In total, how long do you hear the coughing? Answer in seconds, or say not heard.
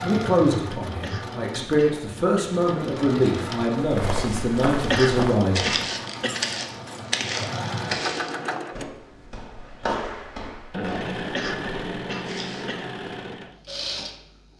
5 s.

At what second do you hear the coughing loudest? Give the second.
5 s.